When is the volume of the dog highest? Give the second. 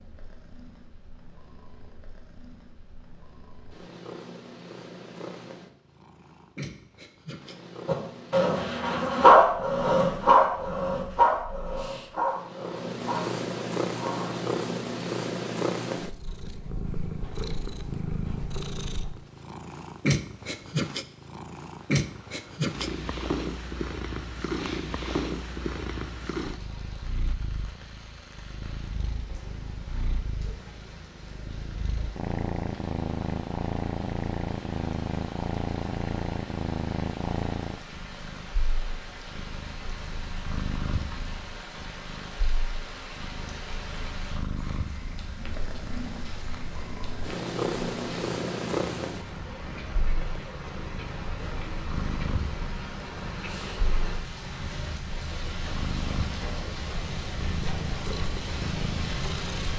9 s.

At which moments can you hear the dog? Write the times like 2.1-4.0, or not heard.
7.8-14.5.